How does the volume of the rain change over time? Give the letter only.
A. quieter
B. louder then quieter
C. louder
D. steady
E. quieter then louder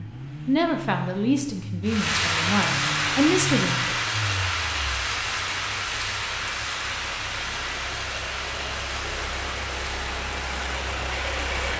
A.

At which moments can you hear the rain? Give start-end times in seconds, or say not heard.
1.8-11.7.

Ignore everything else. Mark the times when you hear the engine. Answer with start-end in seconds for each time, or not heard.
0.0-11.7.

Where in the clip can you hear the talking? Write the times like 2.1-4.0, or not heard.
0.0-3.9.